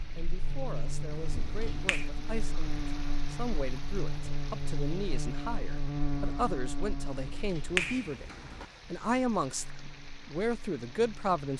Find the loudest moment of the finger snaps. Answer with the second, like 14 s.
8 s.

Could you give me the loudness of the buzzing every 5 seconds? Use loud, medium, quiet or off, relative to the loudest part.
loud, loud, quiet.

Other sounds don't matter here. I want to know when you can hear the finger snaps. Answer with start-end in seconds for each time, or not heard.
1.1-2.1, 7.0-8.7.